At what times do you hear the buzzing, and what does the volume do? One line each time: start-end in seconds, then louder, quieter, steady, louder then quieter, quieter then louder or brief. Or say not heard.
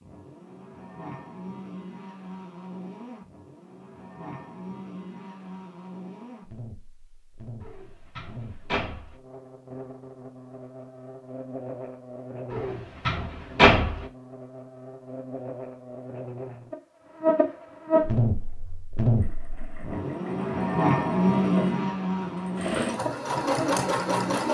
0.0-24.4 louder.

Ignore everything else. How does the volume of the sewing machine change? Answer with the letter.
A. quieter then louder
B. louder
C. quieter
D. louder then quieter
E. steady
B.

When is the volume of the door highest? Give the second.
14 s.